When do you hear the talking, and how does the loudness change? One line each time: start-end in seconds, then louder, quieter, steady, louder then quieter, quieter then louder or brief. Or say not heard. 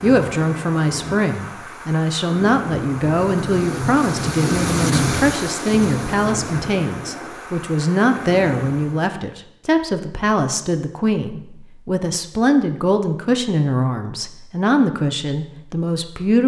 0.0-16.4 steady.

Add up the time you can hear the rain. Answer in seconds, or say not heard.
9 s.